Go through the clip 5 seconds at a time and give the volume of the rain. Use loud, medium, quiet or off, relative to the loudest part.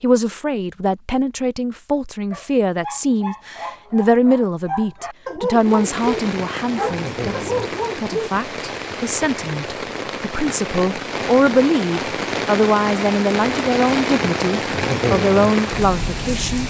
off, medium, loud, loud.